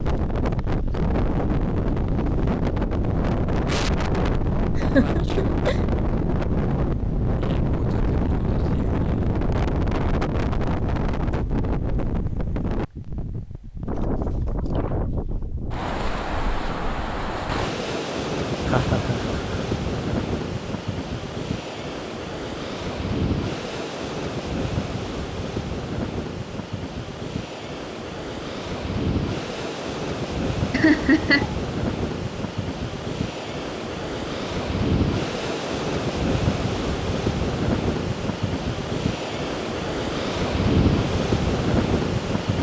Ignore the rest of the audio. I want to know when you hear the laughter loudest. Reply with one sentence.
The volume of the laughter peaks at 31 seconds.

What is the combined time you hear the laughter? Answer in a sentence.
The laughter can be heard for 3 seconds in total.